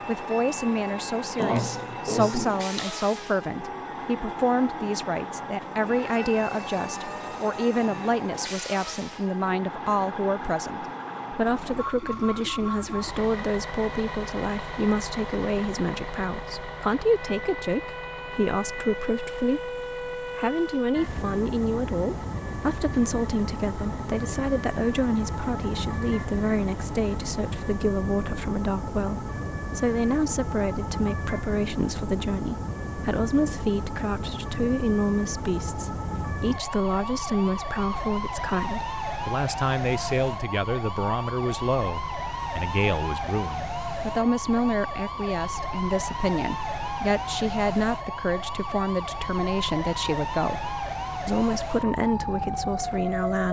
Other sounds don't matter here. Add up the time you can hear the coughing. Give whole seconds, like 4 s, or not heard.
2 s.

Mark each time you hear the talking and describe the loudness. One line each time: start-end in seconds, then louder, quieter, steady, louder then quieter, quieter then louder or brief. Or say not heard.
0.1-53.4 steady.